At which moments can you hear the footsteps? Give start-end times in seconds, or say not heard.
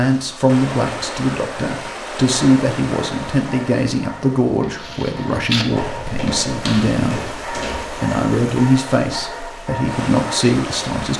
4.6-8.2.